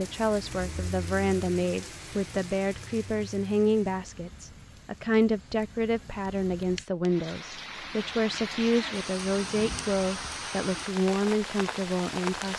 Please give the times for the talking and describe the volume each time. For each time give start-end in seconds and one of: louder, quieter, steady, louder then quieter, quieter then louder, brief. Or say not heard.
0.0-12.5 steady.